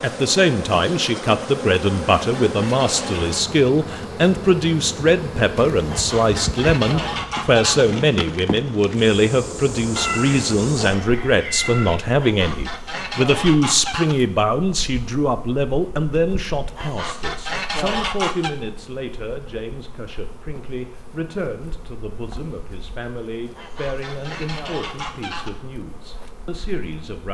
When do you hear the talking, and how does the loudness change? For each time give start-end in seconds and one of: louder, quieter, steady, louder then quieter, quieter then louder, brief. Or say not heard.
0.0-27.2 quieter.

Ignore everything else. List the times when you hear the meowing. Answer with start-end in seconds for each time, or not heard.
9.9-11.9.